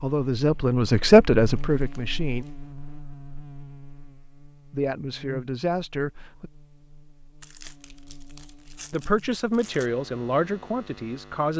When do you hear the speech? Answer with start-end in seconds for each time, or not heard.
0.0-2.5, 4.7-6.5, 8.9-11.5.